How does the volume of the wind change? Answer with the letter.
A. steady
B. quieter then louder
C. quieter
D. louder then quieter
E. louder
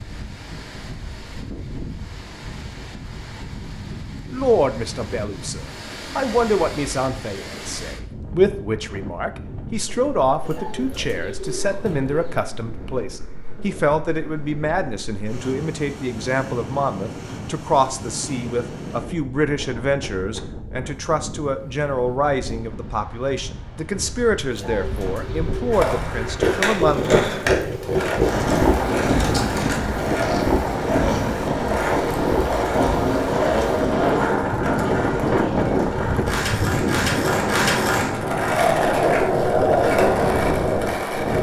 E.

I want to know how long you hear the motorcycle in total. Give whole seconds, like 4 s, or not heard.
not heard.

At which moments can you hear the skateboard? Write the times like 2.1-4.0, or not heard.
25.7-41.3.